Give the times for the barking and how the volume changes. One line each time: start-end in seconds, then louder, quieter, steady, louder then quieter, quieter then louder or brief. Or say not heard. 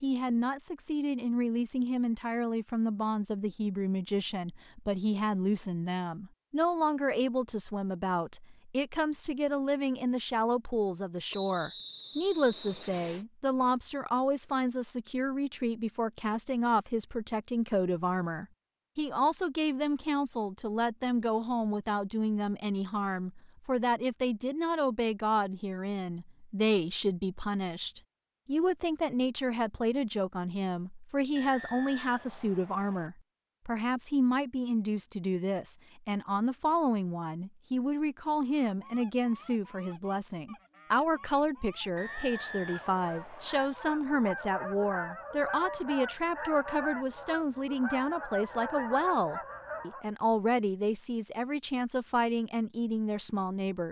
not heard.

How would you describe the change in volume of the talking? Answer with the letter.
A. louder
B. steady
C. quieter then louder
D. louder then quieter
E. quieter
B.